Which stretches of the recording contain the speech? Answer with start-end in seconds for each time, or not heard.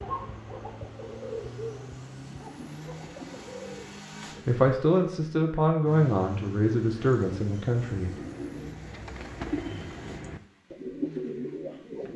4.5-8.2.